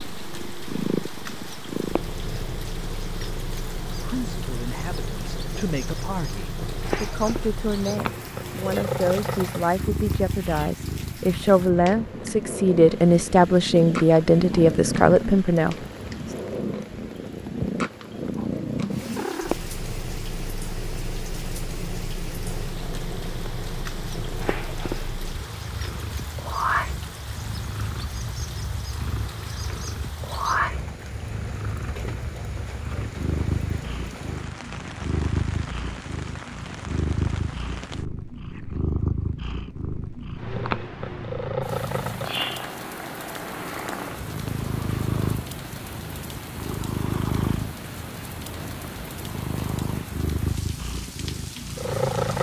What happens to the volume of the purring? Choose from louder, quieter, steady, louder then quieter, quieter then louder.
steady.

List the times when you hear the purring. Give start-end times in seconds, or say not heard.
0.0-52.3.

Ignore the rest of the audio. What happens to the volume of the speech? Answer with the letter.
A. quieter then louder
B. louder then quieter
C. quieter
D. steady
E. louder
E.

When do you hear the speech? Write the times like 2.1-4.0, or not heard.
3.9-16.4.